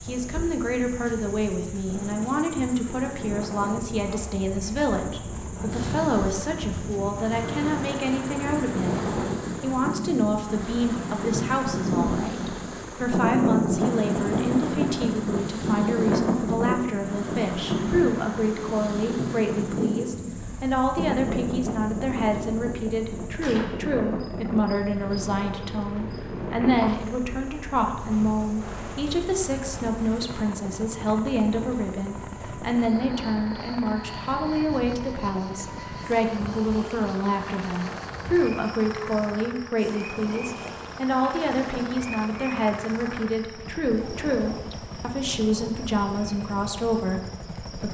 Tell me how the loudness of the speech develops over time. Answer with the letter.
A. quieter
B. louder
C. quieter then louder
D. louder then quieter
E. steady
E.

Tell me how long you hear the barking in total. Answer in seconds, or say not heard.
not heard.